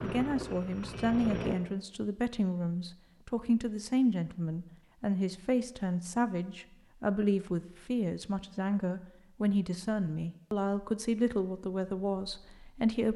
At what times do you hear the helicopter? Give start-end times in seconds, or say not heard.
0.0-1.6.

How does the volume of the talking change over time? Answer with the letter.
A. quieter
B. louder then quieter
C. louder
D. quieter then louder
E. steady
E.